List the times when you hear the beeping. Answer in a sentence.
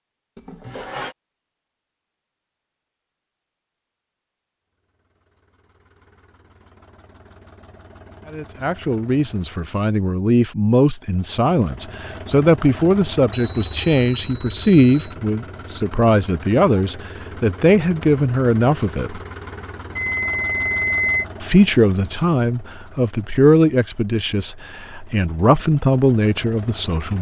The beeping can be heard from 0.3 to 1.1 s, from 13.3 to 15.2 s and from 19.9 to 21.2 s.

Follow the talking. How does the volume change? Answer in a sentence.
The volume of the talking stays about the same.